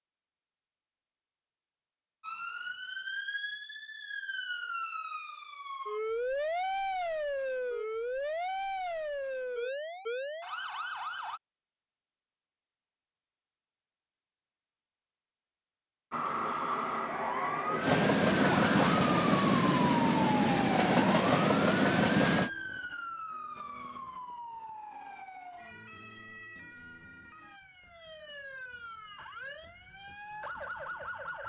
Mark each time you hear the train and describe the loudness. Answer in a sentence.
You can hear the train from 17.8 to 22.5 s, at a steady volume.